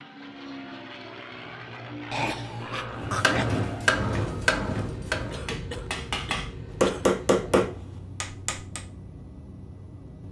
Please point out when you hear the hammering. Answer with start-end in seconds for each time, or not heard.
3.0-8.8.